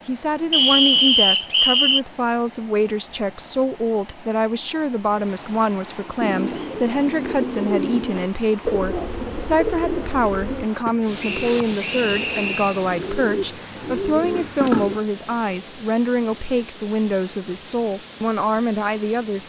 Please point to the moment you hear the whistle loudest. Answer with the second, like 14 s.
1 s.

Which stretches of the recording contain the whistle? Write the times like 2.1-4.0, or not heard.
0.5-2.0, 11.2-12.8.